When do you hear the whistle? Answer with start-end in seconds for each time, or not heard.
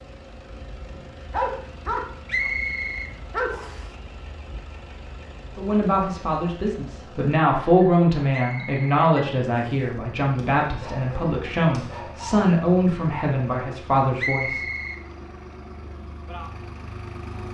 2.2-3.9, 8.3-9.9, 14.2-15.0.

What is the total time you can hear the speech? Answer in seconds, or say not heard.
9 s.